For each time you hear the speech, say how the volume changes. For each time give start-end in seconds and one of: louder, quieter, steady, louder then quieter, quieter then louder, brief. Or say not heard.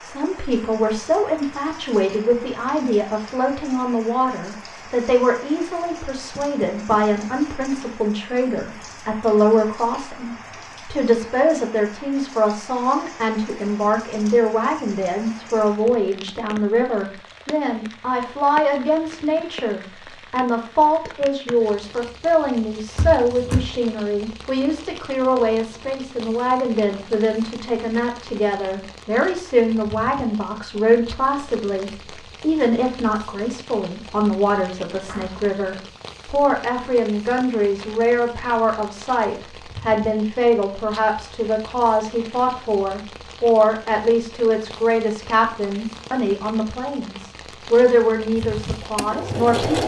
0.0-49.8 steady.